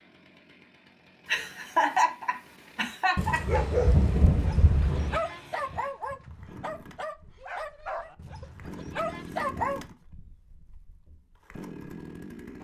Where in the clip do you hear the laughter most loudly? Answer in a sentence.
The volume of the laughter peaks at 2 seconds.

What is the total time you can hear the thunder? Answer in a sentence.
You can hear the thunder for 2 seconds altogether.